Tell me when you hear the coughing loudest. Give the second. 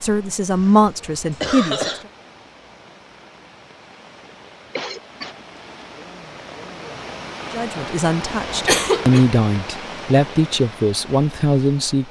9 s.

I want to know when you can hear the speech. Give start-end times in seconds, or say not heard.
0.0-1.9, 7.5-12.0.